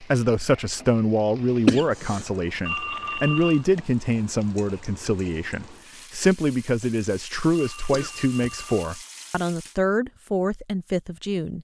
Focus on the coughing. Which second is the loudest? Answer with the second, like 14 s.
2 s.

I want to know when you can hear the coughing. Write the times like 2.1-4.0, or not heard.
1.6-2.2, 7.9-8.7.